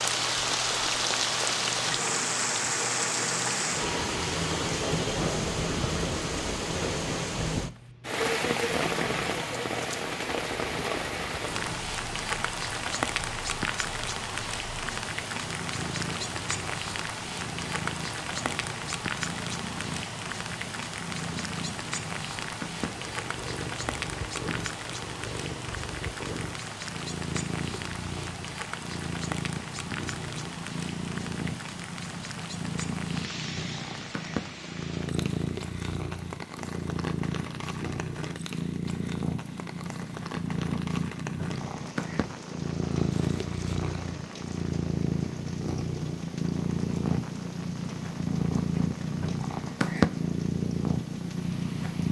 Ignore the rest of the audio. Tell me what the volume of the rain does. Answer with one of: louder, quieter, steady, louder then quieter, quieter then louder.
quieter.